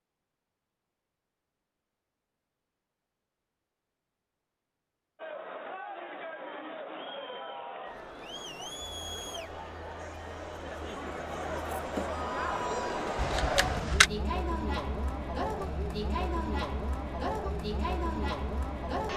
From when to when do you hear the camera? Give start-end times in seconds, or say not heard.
13.2-14.1.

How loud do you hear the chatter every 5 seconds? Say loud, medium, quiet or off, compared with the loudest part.
off, medium, loud, loud.